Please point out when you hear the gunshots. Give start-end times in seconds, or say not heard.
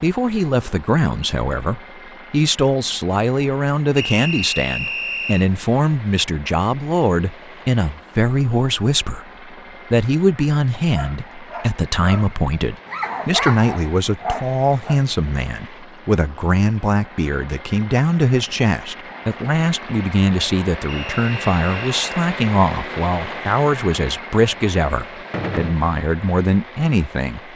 25.3-25.8.